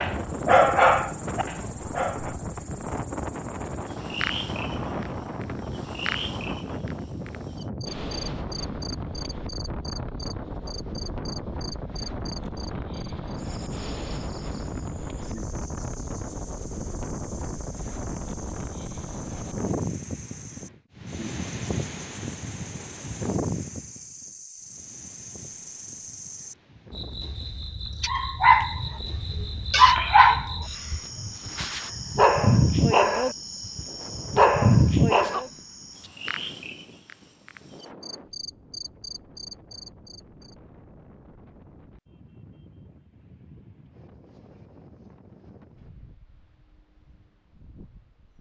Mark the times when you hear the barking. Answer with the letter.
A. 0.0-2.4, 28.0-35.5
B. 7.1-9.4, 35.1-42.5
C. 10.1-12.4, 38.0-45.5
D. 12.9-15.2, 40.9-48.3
A.